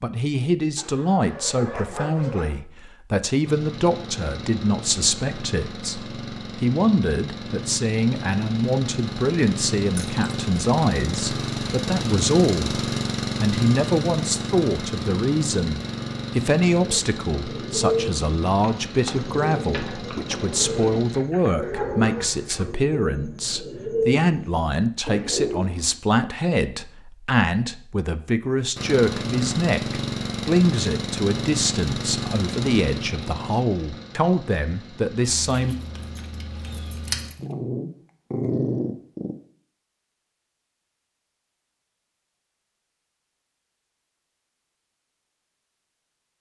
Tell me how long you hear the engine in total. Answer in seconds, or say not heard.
26 s.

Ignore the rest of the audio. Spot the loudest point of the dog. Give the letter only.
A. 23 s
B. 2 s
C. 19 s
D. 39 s
D.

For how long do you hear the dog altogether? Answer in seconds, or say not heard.
5 s.